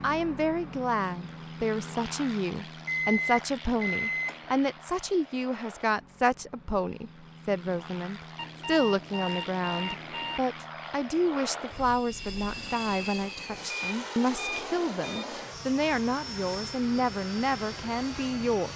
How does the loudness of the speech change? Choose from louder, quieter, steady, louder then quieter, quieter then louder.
steady.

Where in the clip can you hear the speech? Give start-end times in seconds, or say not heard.
0.0-18.7.